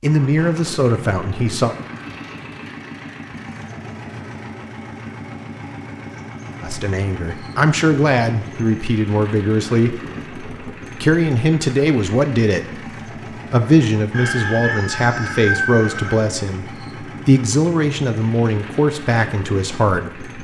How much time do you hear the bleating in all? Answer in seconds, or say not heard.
not heard.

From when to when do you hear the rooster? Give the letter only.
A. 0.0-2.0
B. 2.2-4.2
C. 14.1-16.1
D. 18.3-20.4
C.